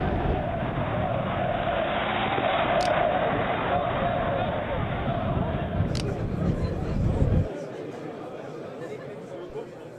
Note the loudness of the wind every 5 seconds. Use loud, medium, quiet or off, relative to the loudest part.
medium, loud.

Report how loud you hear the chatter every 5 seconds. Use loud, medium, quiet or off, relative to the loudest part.
loud, medium.